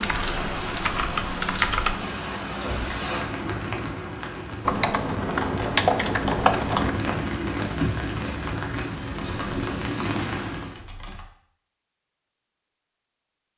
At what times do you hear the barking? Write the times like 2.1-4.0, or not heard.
not heard.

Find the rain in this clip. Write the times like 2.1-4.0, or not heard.
0.0-10.8.